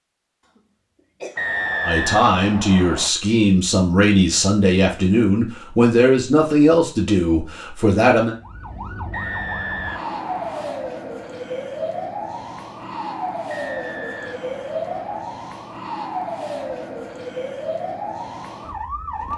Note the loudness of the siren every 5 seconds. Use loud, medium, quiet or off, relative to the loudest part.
off, medium, loud, loud.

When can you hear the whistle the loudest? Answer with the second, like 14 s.
2 s.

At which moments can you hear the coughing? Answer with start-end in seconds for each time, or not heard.
0.5-1.5.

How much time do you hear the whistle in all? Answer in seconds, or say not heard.
5 s.